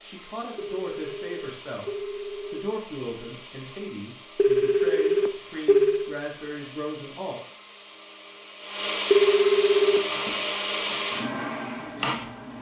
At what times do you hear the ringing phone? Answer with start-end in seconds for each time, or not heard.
0.6-2.6, 4.3-6.1, 9.1-10.0.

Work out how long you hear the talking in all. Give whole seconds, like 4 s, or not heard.
7 s.